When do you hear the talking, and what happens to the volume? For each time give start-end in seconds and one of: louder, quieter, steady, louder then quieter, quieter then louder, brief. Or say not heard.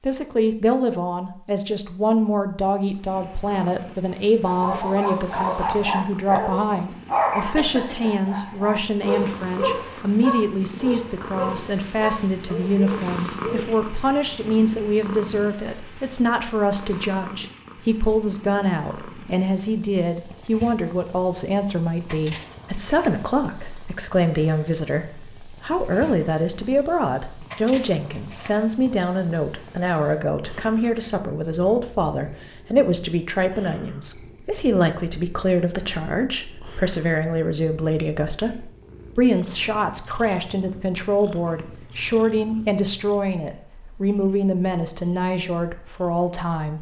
0.0-46.7 steady.